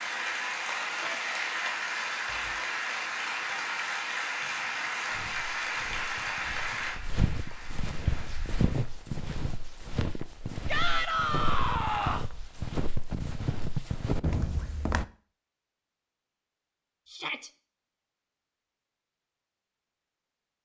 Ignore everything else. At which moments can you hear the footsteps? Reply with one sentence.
The footsteps can be heard from 5.1 to 15.1 s.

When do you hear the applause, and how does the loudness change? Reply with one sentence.
The applause can be heard from 0.0 to 8.8 s, getting quieter.